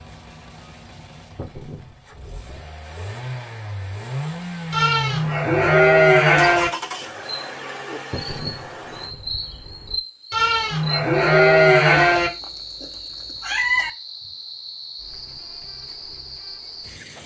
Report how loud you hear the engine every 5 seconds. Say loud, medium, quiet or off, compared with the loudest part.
loud, loud, off, off.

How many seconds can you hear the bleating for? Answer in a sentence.
The bleating can be heard for 4 seconds in total.